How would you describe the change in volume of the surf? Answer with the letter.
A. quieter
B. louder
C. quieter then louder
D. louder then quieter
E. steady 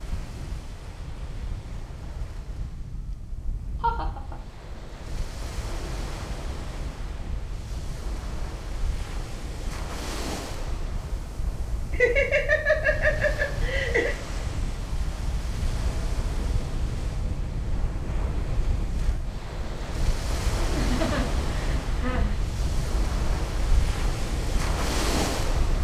B.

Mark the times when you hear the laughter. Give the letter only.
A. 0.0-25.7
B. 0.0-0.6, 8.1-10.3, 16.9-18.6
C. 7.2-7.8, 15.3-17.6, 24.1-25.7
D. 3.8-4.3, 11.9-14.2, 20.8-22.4
D.